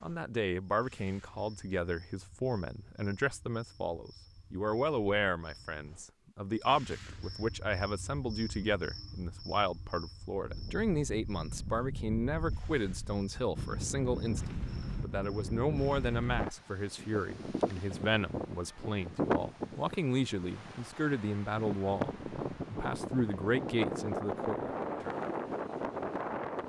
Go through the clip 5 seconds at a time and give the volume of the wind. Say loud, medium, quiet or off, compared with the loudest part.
off, off, medium, loud, loud, loud.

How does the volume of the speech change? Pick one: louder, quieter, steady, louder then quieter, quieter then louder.
steady.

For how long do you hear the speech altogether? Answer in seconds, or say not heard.
25 s.